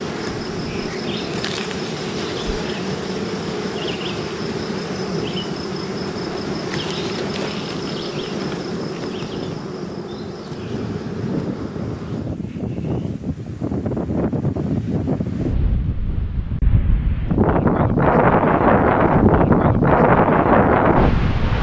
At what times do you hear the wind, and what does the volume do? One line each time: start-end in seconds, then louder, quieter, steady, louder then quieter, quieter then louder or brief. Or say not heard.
0.1-21.5 louder.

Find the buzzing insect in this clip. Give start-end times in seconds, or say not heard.
0.0-12.4.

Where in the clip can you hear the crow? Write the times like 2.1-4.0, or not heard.
not heard.